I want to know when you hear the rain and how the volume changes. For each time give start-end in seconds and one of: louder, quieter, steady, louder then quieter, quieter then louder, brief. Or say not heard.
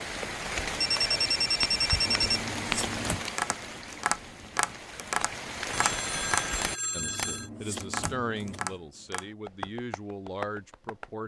0.0-6.8 quieter then louder.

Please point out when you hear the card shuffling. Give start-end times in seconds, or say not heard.
2.0-3.3, 7.0-8.8.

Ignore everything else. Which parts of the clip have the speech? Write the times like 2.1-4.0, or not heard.
6.9-11.2.